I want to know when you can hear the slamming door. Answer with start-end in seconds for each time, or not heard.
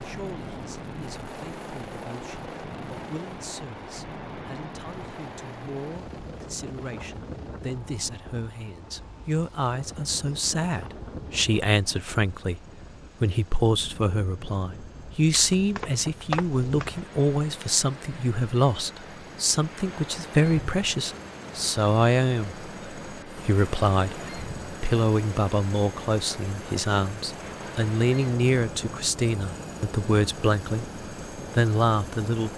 not heard.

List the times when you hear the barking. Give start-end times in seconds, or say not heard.
15.3-17.1.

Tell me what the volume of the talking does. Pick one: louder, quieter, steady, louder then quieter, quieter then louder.
louder.